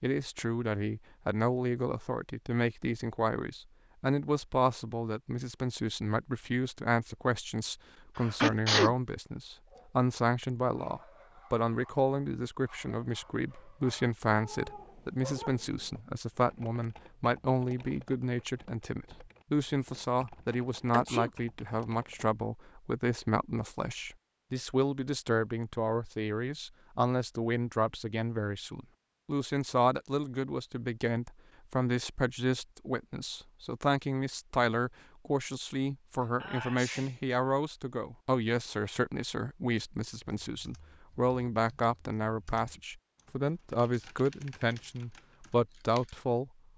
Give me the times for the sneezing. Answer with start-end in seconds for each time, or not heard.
8.2-8.9, 20.9-21.3, 36.2-37.1.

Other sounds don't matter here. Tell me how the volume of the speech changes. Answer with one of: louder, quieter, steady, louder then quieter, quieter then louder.
steady.